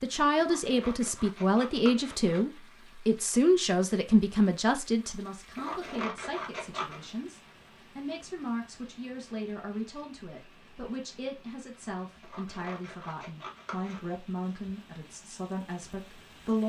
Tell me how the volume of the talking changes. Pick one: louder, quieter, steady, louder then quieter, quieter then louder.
quieter.